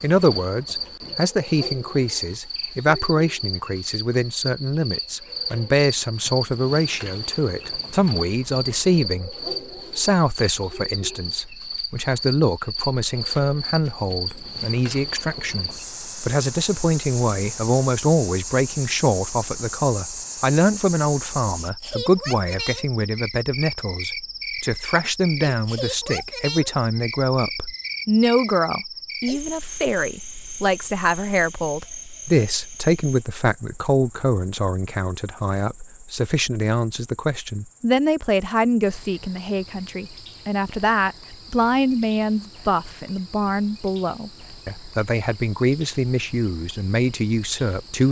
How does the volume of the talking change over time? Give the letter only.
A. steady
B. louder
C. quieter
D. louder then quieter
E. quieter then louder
A.